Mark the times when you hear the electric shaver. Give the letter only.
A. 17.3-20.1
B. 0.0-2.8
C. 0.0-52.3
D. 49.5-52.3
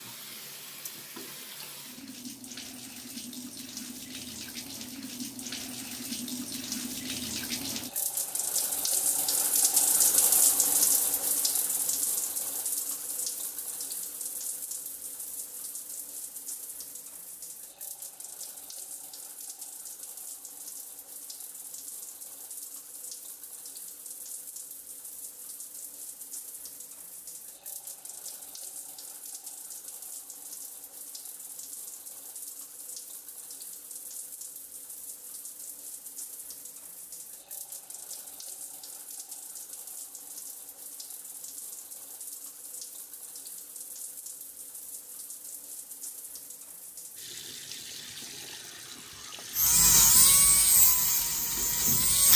D.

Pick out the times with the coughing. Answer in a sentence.
You can't hear the coughing here.